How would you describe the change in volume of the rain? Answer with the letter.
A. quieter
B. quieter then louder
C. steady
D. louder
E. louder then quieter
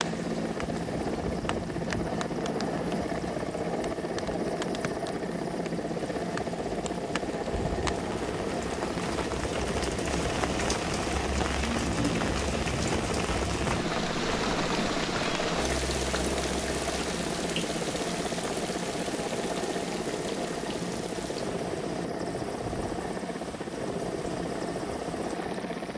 E.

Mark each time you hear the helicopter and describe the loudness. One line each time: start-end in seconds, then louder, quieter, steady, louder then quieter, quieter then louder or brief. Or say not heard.
0.0-25.9 steady.